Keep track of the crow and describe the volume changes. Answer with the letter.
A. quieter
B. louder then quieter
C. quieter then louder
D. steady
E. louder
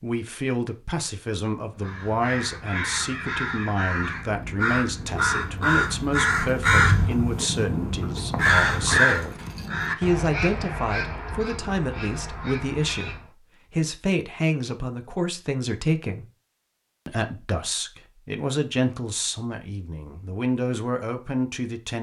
B.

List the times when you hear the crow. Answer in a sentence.
The crow can be heard from 1.6 to 13.3 s.